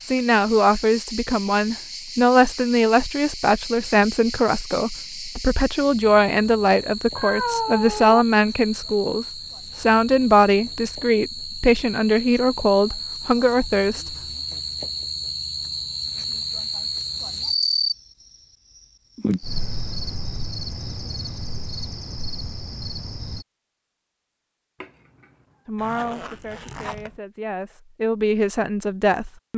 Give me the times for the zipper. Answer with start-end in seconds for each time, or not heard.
25.8-27.2.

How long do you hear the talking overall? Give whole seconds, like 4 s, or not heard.
18 s.